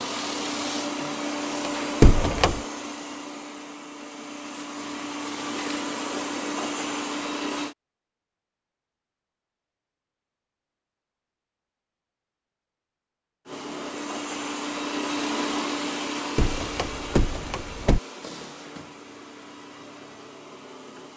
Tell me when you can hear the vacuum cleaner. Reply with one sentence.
You can hear the vacuum cleaner from 0.0 to 7.8 s and from 13.4 to 21.1 s.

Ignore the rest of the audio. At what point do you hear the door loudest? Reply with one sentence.
The volume of the door peaks at 2 seconds.